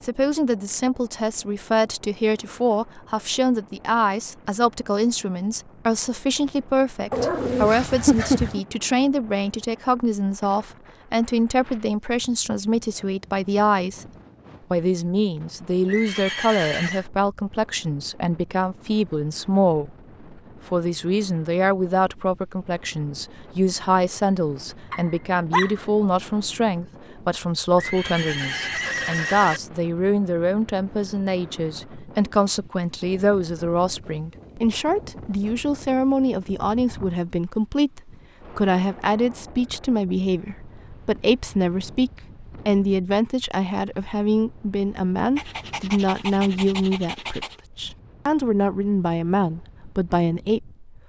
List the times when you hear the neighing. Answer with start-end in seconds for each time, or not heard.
15.8-17.1, 27.8-29.6.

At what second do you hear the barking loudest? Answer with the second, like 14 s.
8 s.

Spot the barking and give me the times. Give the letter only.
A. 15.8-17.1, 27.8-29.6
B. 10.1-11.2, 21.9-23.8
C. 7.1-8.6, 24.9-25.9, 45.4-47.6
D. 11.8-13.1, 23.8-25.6
C.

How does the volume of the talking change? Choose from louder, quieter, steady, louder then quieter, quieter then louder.
steady.